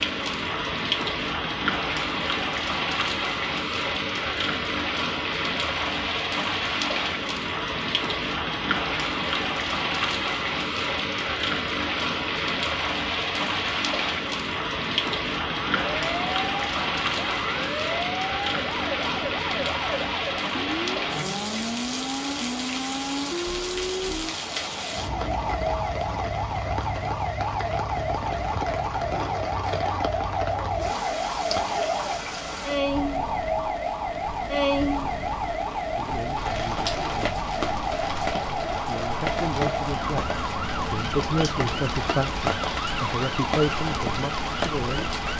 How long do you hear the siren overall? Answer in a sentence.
You can hear the siren for 30 seconds altogether.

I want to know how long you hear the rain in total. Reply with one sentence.
The rain can be heard for 45 seconds in total.